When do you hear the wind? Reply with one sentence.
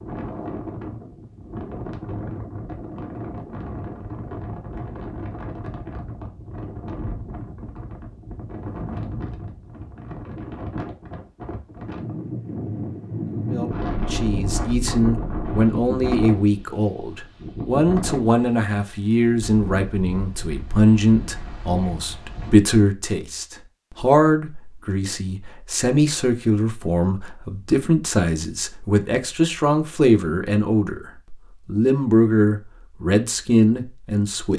The wind can be heard from 0.0 to 22.6 s.